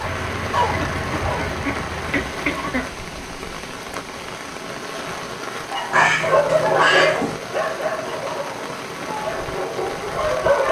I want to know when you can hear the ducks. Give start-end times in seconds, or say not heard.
0.0-2.9, 5.9-7.3.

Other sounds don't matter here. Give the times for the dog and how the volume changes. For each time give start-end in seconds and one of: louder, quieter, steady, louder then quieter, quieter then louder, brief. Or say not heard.
0.0-1.5 brief
5.7-10.6 quieter.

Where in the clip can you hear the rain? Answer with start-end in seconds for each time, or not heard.
0.0-10.6.